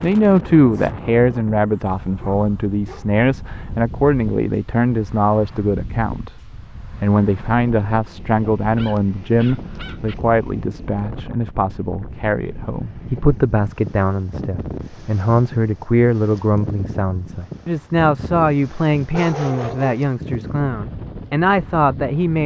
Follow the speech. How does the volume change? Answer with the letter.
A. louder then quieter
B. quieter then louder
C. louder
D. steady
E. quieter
D.